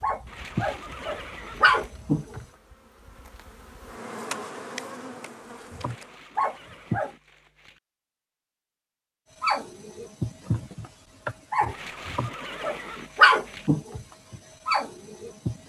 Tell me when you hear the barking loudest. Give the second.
13 s.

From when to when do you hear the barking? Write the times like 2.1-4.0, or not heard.
0.0-2.5, 5.7-7.1, 9.4-15.6.